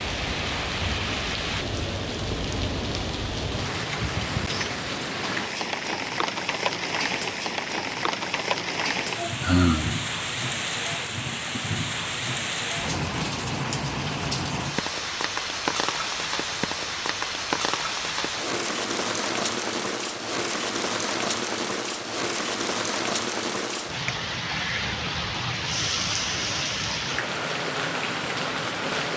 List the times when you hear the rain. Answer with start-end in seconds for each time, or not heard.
0.0-29.1.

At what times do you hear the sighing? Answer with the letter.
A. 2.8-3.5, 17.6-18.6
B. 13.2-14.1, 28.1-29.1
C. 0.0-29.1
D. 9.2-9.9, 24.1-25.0
D.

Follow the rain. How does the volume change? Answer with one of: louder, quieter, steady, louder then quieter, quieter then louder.
steady.